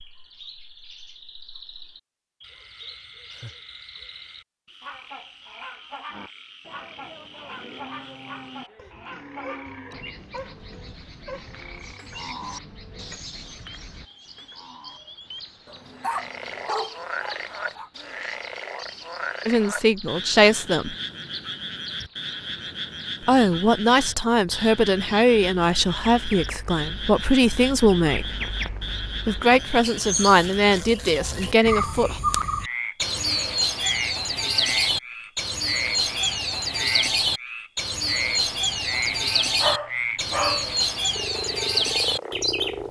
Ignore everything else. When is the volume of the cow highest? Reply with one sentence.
The loudest moment of the cow is at 12 seconds.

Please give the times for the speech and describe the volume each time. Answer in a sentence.
The speech can be heard briefly from 19.4 to 20.9 s; from 23.2 to 28.4 s, getting quieter then louder; and briefly from 29.2 to 32.2 s.